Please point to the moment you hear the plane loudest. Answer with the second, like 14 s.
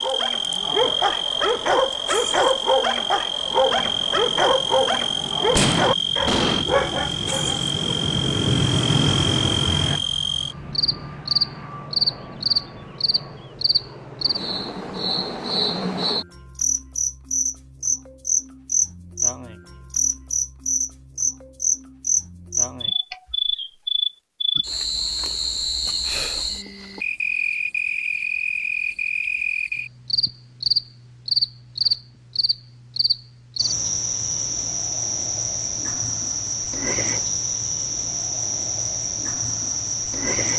9 s.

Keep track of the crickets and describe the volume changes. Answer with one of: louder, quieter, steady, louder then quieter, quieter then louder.
steady.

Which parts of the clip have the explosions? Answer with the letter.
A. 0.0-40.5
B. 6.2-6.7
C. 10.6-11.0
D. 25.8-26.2
B.